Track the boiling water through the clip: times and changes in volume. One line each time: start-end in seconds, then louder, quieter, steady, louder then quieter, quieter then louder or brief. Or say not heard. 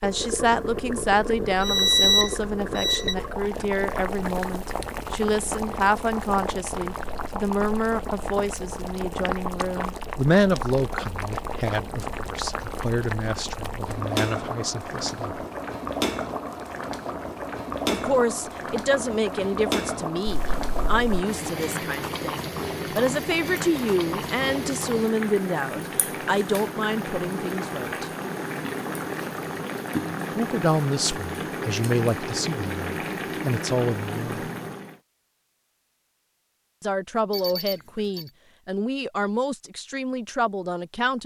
0.0-35.0 steady.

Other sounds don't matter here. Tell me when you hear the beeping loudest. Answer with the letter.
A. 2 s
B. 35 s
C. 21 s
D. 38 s
A.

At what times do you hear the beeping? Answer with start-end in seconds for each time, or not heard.
1.6-3.1, 20.3-21.2, 37.3-38.3.